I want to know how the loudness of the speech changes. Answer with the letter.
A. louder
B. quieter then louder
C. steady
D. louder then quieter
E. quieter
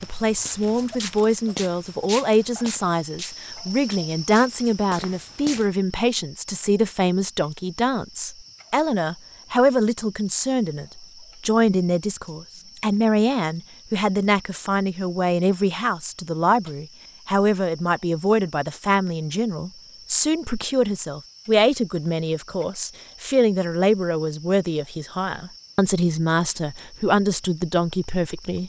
C.